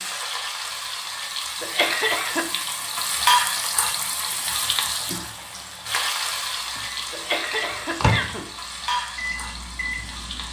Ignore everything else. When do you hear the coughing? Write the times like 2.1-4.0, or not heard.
1.6-2.5, 7.1-8.5.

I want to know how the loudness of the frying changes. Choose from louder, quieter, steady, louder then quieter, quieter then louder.
louder then quieter.